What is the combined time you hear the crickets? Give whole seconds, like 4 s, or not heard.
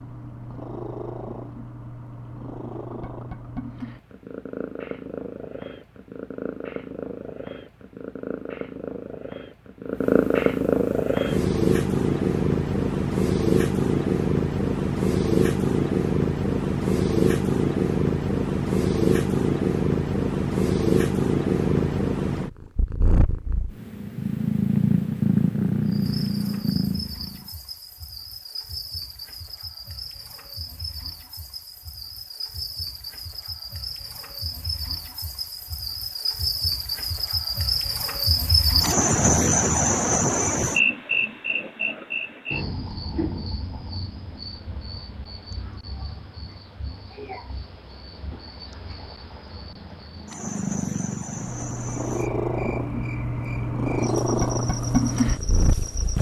30 s.